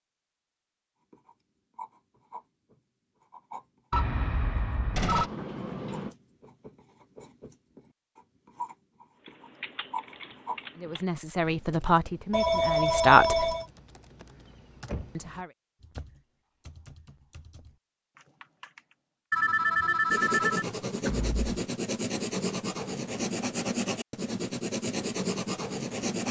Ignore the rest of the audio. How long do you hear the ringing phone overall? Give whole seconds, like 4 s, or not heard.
4 s.